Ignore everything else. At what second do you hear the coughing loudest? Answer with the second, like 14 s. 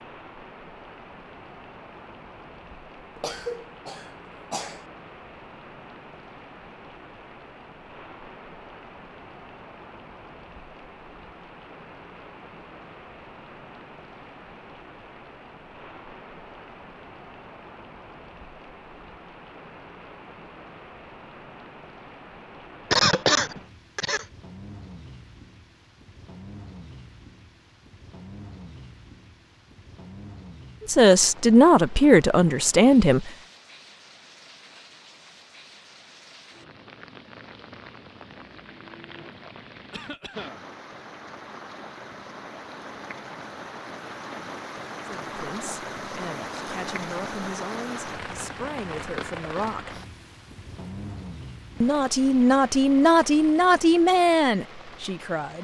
23 s.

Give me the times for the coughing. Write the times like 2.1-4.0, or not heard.
3.1-4.8, 22.9-24.2, 39.9-40.6.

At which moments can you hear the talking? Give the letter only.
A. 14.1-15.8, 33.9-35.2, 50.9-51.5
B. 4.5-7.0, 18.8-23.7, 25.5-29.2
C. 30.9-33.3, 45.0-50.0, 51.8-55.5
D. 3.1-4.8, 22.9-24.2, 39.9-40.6
C.